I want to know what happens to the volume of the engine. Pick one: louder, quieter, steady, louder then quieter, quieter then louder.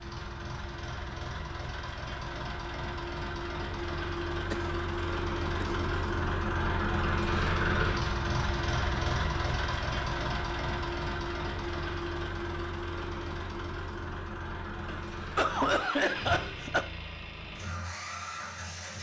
louder then quieter.